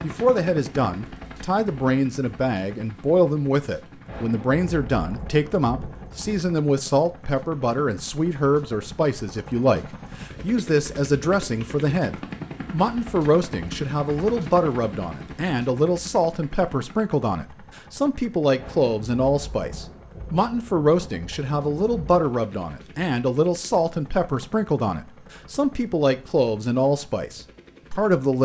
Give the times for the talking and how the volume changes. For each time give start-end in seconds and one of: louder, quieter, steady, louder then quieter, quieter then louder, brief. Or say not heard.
0.0-28.4 steady.